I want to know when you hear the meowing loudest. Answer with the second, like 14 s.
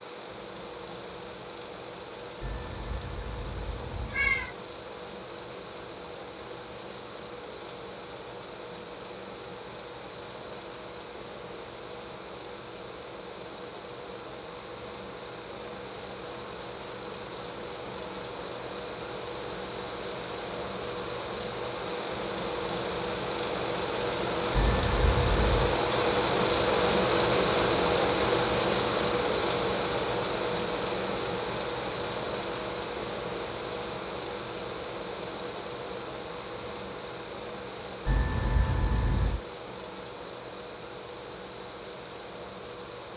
4 s.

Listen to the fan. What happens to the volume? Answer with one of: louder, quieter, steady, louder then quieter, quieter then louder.
louder then quieter.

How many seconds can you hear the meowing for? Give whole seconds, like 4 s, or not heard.
5 s.